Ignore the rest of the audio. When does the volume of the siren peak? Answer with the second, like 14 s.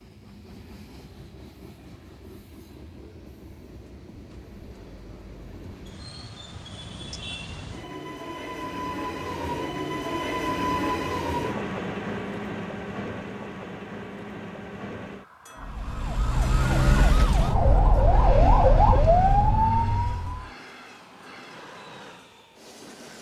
19 s.